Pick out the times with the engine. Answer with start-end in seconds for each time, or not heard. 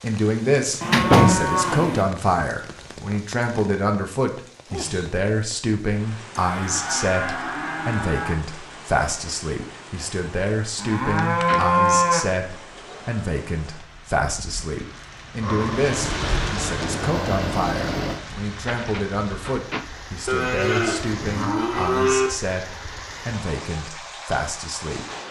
15.4-18.2.